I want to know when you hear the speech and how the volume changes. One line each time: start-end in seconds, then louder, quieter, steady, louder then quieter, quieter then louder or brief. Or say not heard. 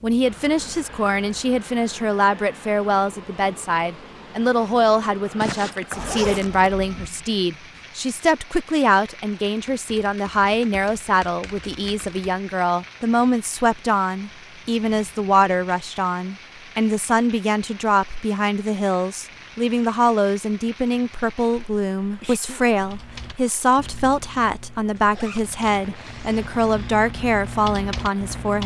0.0-28.6 steady.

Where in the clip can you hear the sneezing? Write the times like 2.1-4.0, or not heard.
5.4-6.2, 22.2-22.6.